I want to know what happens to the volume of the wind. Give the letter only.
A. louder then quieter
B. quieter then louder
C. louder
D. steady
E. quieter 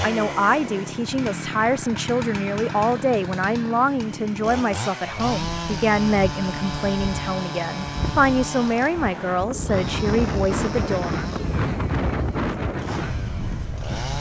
C.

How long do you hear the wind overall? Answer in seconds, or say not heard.
9 s.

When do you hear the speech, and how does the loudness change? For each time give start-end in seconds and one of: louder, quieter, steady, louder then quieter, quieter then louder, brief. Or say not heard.
0.0-11.1 steady.